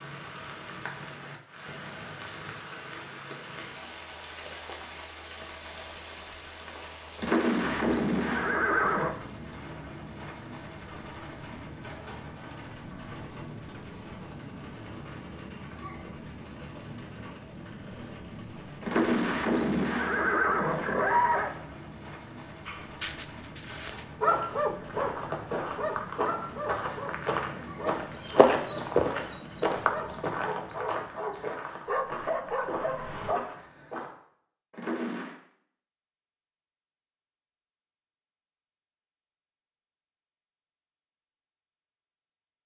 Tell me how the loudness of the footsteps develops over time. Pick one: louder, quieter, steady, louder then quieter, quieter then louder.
louder then quieter.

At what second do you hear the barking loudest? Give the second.
24 s.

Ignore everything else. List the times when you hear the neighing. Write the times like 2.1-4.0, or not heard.
7.2-9.2, 18.8-21.5, 34.7-35.4.